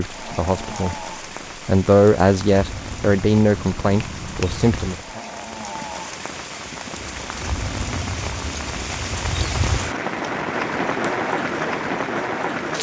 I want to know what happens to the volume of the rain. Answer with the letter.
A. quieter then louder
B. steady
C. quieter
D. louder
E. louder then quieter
D.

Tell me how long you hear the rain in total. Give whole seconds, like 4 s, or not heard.
13 s.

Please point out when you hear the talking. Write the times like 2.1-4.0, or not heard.
0.0-0.9, 1.6-5.2.